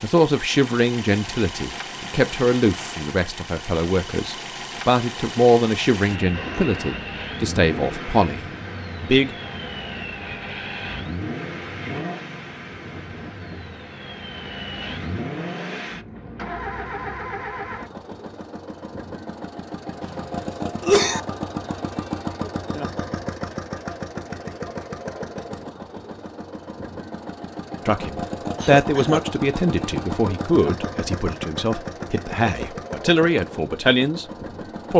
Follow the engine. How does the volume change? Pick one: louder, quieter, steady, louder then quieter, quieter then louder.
steady.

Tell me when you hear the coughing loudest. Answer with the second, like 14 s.
21 s.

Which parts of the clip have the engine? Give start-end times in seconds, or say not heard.
0.0-34.9.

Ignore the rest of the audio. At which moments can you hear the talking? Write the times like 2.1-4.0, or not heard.
0.0-9.3, 27.9-34.2.